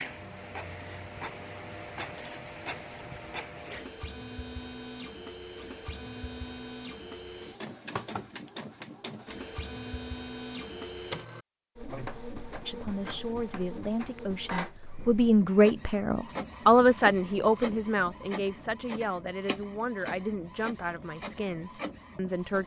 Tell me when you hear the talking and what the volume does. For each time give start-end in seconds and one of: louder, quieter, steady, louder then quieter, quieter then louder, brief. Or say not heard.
12.7-22.6 louder then quieter.